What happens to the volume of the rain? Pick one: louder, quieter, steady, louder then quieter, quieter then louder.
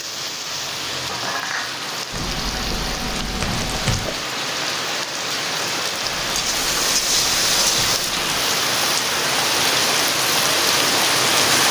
louder.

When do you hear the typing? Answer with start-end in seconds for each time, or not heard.
2.1-4.2, 6.0-8.4.